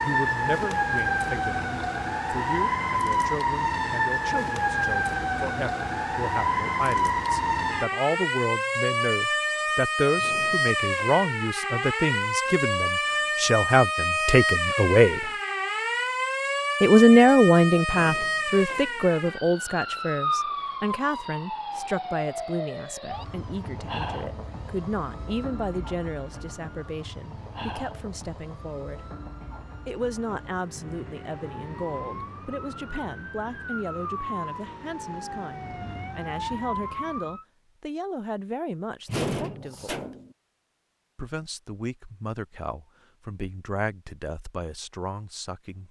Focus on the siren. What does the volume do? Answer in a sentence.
The loudness of the siren goes down.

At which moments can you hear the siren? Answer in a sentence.
You can hear the siren from 0.0 to 37.5 s.